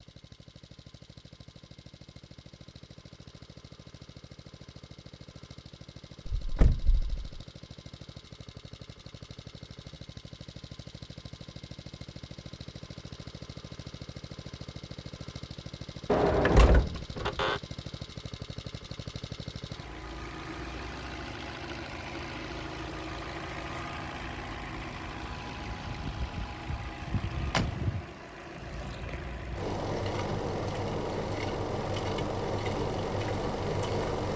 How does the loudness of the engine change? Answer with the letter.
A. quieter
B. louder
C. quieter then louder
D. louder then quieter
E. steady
B.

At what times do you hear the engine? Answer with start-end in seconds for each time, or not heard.
0.0-34.3.